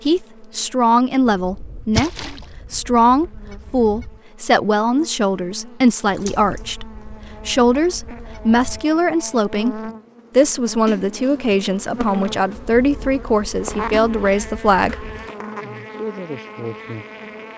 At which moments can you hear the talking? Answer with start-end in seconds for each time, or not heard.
0.1-15.1.